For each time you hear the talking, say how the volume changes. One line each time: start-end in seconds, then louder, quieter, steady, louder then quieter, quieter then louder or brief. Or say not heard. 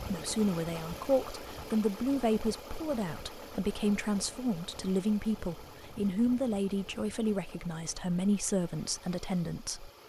0.0-9.9 steady.